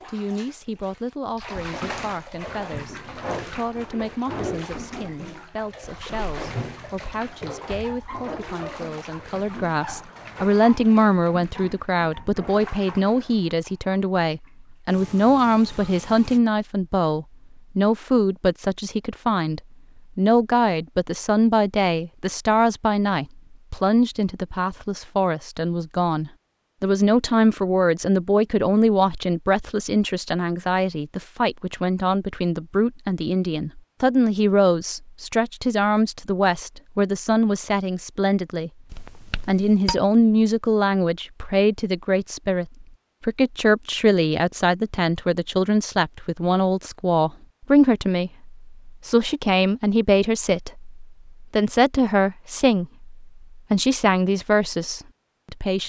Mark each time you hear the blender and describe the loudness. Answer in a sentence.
You can't hear the blender here.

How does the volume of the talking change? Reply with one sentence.
The loudness of the talking goes up.